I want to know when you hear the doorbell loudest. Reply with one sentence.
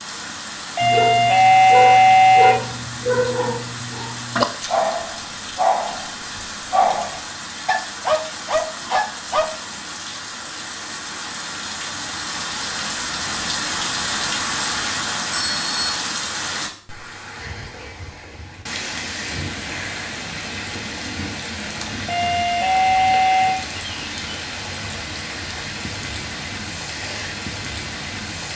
The volume of the doorbell peaks at 2 seconds.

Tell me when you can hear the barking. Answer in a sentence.
The barking can be heard from 0.8 to 9.5 s.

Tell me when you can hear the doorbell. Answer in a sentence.
The doorbell can be heard from 0.8 to 2.5 s, from 15.3 to 15.8 s and from 22.1 to 23.6 s.